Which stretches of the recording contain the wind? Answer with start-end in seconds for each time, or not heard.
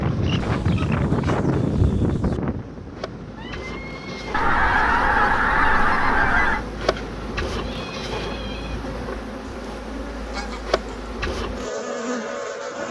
0.0-9.1.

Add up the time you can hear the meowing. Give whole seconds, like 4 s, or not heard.
3 s.